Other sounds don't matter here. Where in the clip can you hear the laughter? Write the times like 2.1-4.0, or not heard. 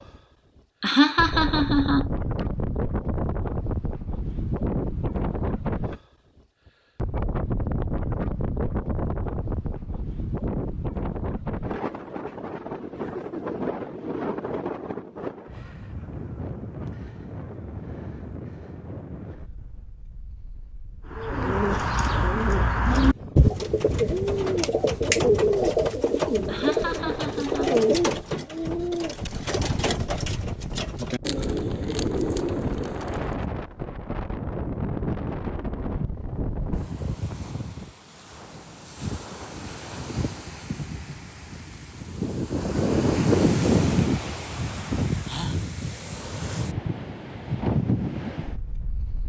0.8-2.1, 26.4-27.8.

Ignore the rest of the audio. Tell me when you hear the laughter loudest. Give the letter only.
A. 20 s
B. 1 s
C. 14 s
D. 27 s
B.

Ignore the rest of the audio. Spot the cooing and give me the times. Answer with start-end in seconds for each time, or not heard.
21.1-33.5.